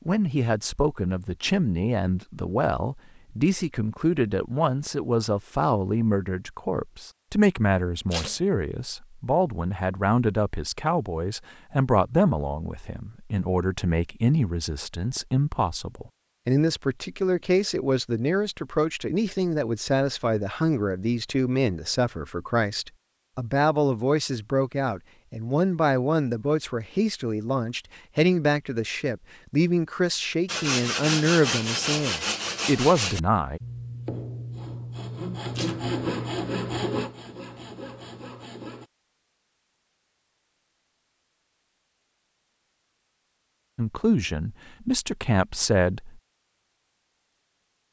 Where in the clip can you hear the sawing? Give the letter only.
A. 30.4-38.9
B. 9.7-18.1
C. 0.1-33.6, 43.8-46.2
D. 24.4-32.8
A.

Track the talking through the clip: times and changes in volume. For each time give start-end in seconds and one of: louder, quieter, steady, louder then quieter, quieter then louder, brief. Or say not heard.
0.1-33.6 steady
43.8-46.2 brief.